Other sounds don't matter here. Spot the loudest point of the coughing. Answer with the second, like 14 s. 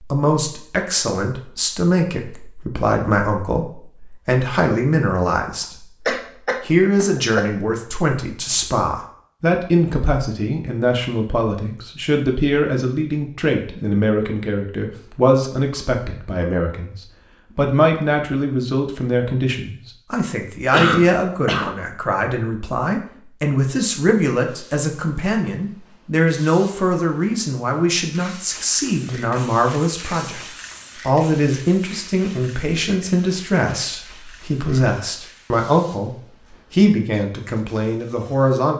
21 s.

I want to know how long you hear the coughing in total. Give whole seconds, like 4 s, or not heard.
3 s.